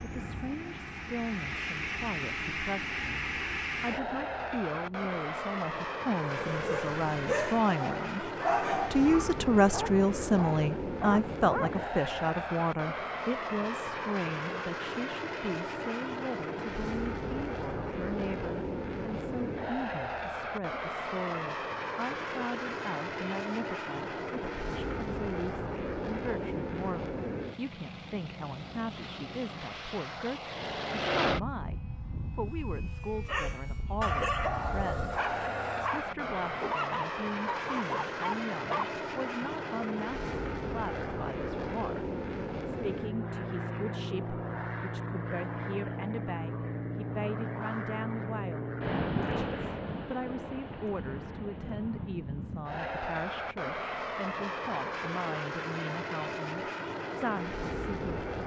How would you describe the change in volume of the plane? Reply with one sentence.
The volume of the plane stays about the same.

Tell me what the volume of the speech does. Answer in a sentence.
The volume of the speech goes down.